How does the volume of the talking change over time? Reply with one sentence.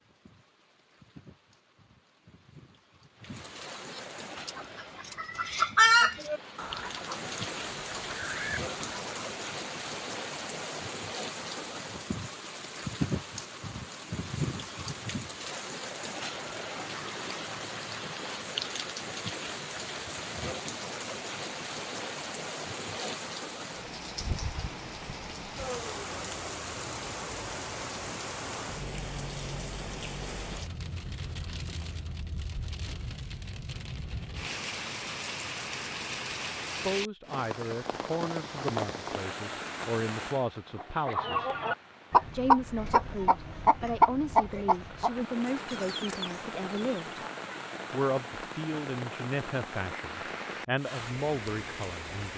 The volume of the talking stays about the same.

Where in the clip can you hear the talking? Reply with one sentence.
The talking can be heard from 36.8 to 41.5 s, from 42.3 to 47.2 s and from 47.9 to 52.3 s.